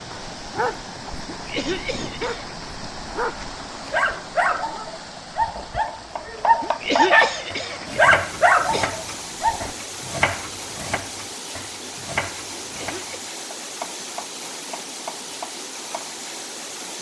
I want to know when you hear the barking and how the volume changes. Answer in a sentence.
You can hear the barking from 0.1 to 9.7 s, getting louder.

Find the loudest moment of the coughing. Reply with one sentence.
The volume of the coughing peaks at 7 seconds.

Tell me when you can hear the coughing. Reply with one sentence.
The coughing can be heard from 1.3 to 2.6 s, from 6.6 to 8.9 s and from 12.6 to 13.2 s.